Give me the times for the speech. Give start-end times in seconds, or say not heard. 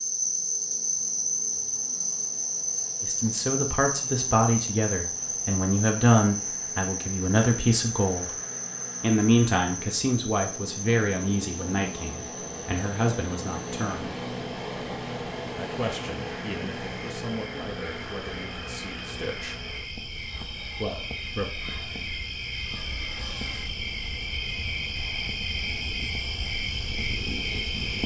3.0-8.3, 9.0-14.2, 15.6-19.6, 20.8-21.6.